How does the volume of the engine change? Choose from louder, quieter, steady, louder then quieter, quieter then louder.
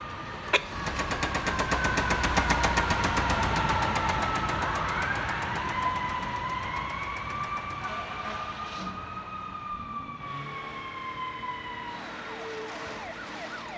quieter.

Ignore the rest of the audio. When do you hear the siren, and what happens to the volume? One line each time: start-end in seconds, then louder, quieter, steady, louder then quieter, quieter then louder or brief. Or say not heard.
0.0-13.7 quieter.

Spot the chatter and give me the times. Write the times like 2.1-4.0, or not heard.
not heard.